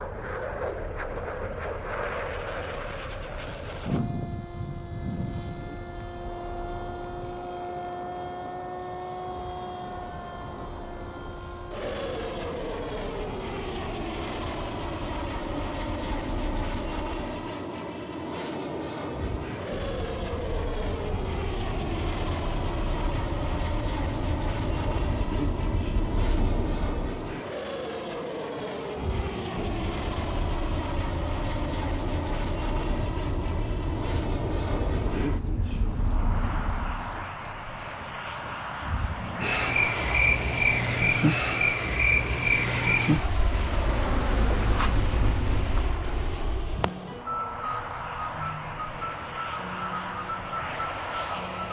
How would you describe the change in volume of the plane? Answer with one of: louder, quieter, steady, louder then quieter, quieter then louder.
steady.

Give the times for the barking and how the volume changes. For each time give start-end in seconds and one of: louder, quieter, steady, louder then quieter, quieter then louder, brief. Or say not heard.
not heard.